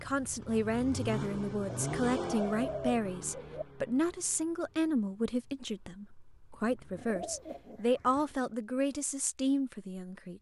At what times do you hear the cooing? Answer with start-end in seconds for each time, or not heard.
1.6-3.6, 7.0-8.4.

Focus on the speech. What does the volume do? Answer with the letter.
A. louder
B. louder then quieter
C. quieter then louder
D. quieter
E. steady
E.